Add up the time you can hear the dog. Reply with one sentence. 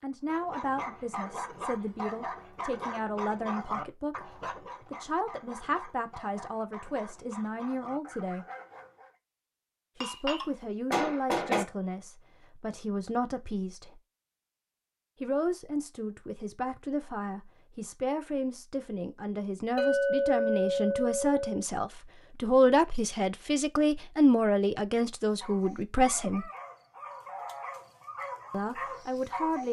You can hear the dog for 13 seconds altogether.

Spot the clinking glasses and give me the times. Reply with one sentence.
You can hear the clinking glasses from 10.0 to 11.7 s and from 19.8 to 21.6 s.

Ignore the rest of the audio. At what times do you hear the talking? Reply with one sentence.
The talking can be heard from 0.0 to 8.4 s, from 9.9 to 14.0 s, from 15.2 to 26.5 s and from 28.5 to 29.6 s.